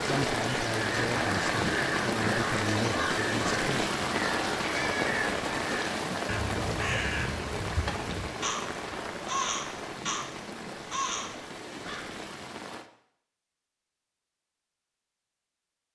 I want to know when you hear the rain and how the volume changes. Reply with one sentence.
You can hear the rain from 0.0 to 12.9 s, getting quieter.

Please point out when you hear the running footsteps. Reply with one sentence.
You can't hear the running footsteps here.